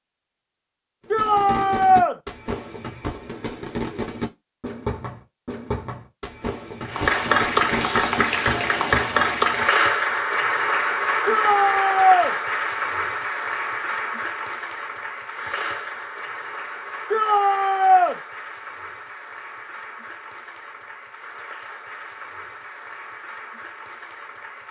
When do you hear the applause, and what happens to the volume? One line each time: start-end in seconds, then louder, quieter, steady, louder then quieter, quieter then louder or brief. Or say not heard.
6.8-24.6 quieter.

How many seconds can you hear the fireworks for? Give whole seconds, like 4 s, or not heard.
8 s.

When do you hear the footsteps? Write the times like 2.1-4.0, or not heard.
not heard.